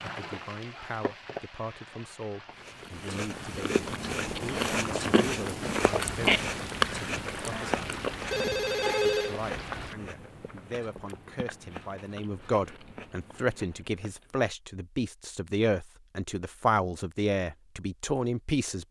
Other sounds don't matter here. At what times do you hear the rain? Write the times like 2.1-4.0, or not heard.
0.0-9.9.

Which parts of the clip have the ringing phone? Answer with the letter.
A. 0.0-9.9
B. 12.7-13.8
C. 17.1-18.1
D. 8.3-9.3
D.